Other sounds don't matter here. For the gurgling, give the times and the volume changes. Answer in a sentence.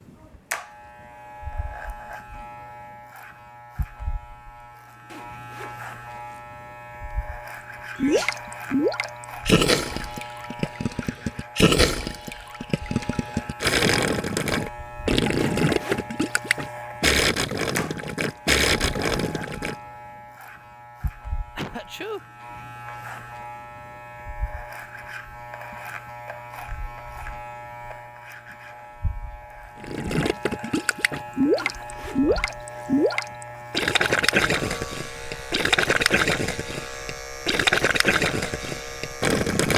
You can hear the gurgling from 8.0 to 19.8 s, at a steady volume; and from 29.8 to 39.7 s, at a steady volume.